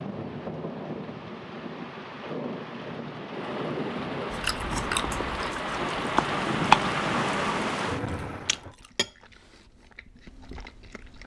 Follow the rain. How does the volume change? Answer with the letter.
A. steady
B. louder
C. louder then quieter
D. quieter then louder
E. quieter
B.